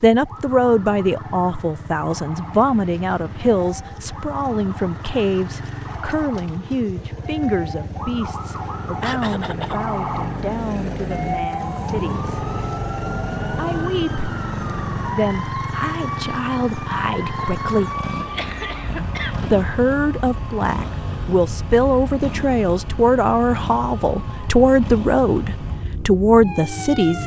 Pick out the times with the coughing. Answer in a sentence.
You can hear the coughing from 9.0 to 9.8 s and from 18.2 to 19.6 s.